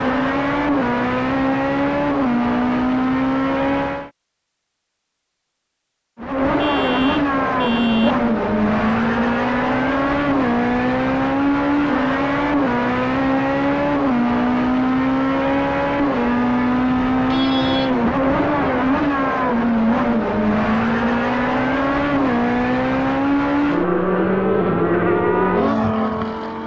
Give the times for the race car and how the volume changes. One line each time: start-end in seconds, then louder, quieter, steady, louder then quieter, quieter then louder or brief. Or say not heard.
0.0-4.1 steady
6.2-26.6 steady.